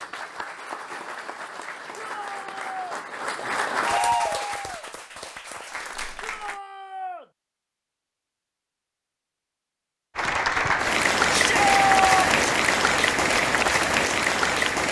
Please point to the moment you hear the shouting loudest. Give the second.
12 s.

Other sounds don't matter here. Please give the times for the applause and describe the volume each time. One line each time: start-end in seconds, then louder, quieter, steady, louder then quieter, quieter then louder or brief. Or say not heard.
0.0-6.6 louder then quieter
10.2-14.8 steady.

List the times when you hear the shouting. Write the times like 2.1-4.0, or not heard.
1.9-3.0, 6.2-7.2, 11.3-12.3.